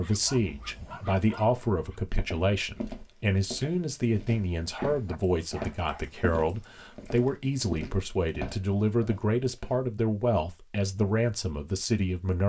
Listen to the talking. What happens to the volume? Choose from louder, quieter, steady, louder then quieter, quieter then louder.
steady.